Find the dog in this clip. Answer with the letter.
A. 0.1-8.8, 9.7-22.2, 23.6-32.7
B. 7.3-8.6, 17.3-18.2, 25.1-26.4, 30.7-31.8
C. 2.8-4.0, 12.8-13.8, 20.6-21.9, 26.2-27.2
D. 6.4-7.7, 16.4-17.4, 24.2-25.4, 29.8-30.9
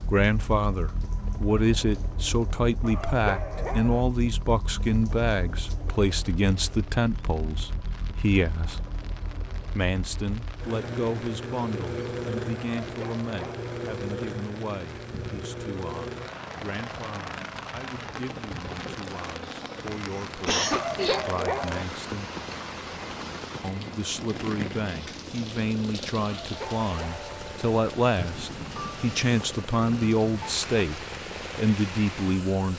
C.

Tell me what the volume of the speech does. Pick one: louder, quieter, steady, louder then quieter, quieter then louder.
quieter then louder.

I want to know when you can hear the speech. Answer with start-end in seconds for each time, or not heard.
0.1-8.8, 9.7-22.2, 23.6-32.7.